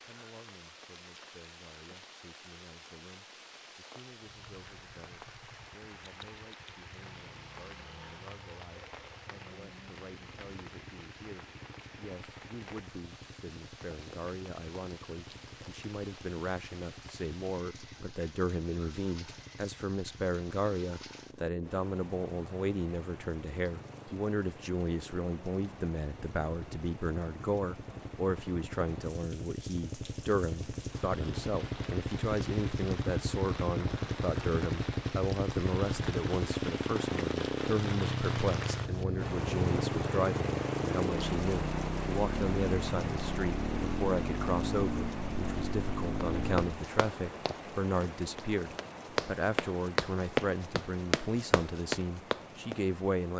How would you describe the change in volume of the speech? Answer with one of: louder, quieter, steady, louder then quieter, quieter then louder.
louder.